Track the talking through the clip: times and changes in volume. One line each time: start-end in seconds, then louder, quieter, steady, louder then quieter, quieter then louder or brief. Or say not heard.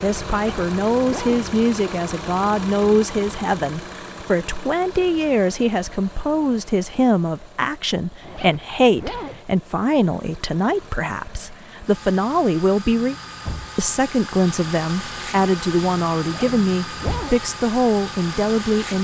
0.0-13.2 steady
13.8-18.9 steady.